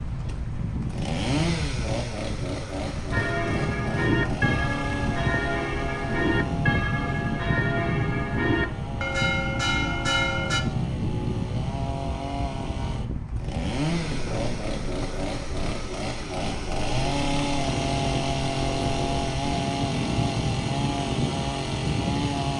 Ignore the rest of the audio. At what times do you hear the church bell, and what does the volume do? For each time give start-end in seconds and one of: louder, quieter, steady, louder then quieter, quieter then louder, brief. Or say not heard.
3.1-10.6 steady.